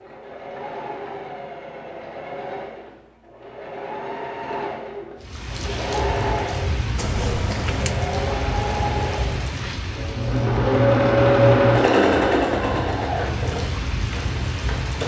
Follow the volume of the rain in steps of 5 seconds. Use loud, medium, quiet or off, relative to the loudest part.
off, loud, loud.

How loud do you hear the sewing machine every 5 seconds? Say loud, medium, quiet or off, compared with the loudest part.
quiet, medium, loud.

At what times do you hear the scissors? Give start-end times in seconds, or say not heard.
7.0-8.0.